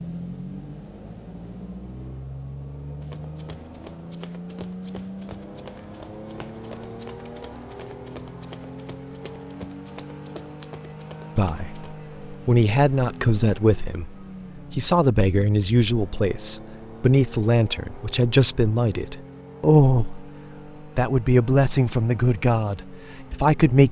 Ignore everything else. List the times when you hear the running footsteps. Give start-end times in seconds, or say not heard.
3.0-11.9.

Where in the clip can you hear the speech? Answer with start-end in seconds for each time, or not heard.
11.3-20.2, 20.9-23.8.